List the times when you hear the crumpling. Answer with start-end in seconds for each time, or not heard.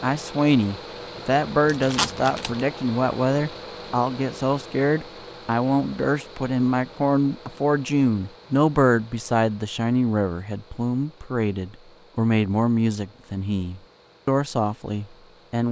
1.6-2.6.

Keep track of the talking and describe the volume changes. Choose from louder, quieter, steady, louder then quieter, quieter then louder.
steady.